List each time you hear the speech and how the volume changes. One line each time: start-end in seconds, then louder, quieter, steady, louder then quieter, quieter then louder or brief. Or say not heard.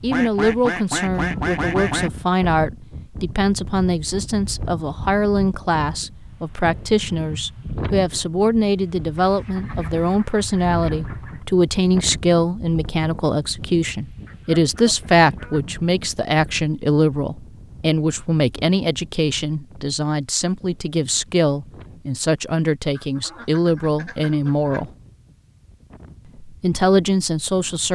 0.0-24.9 steady
26.4-27.8 brief.